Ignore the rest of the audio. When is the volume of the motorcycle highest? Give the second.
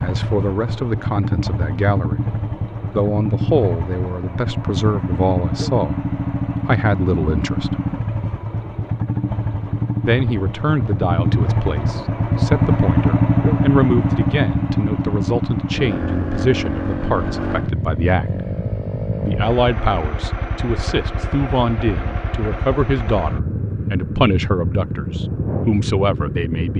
13 s.